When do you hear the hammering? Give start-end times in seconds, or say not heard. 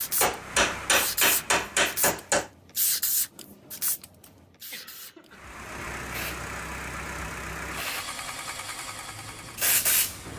0.2-2.5.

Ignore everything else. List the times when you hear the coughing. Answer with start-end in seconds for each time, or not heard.
4.7-5.5.